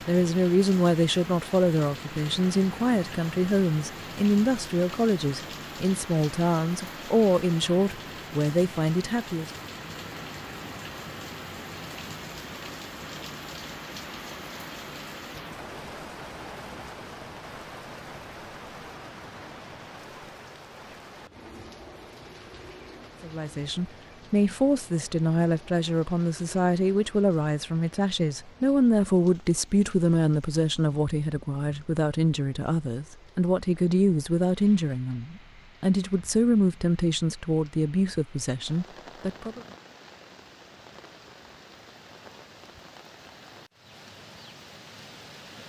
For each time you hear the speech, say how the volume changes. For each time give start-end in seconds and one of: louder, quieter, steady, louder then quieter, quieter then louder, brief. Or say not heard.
0.1-9.5 steady
23.2-39.6 steady.